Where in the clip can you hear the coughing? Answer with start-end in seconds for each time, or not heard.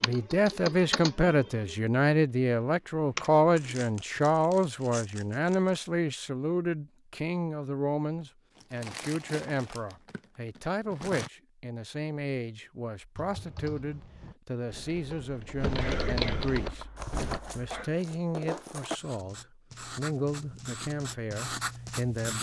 15.8-17.9.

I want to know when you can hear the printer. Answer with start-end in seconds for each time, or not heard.
not heard.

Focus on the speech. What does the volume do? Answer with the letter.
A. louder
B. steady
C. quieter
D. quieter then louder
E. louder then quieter
C.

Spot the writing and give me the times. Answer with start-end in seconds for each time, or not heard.
18.9-22.3.